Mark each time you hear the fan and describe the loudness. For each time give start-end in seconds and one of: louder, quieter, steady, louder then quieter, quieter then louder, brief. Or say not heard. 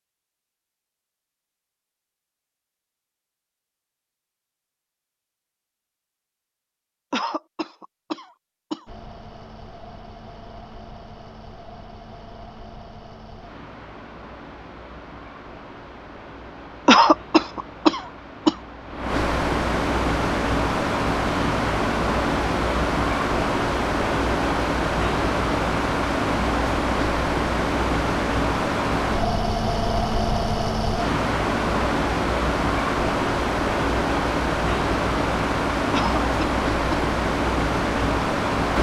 8.8-38.7 louder.